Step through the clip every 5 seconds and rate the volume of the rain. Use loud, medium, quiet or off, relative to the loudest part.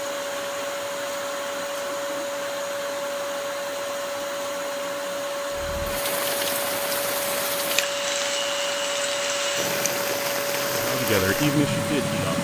off, loud, loud.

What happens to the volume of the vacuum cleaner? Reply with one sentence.
The volume of the vacuum cleaner stays about the same.